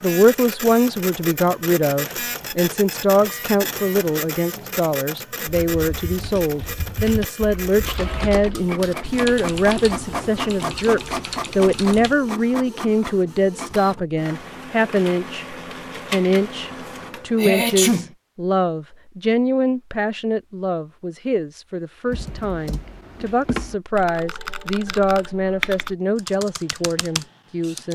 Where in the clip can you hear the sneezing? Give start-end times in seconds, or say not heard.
17.4-18.1.